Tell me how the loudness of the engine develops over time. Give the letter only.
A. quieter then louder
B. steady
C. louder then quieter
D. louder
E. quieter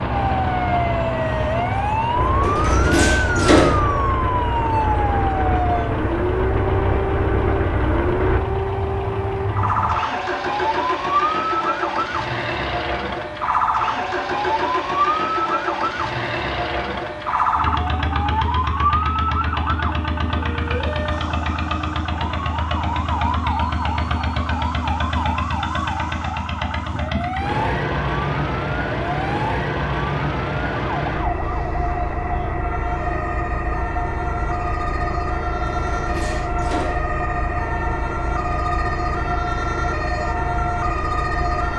B.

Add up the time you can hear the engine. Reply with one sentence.
You can hear the engine for 42 seconds altogether.